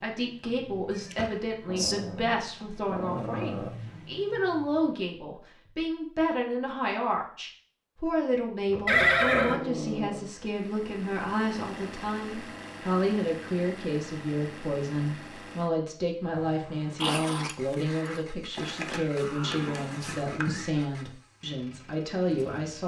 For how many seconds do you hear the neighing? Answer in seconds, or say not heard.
4 s.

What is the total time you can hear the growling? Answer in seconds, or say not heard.
5 s.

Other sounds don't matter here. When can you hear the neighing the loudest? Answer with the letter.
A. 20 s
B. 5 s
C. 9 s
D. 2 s
C.